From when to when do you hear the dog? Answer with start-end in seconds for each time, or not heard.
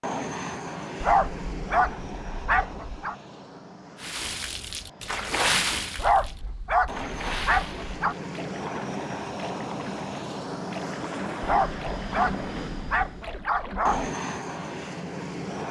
1.0-3.1, 6.0-8.2, 11.4-14.1.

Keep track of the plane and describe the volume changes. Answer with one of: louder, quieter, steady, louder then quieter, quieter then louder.
quieter then louder.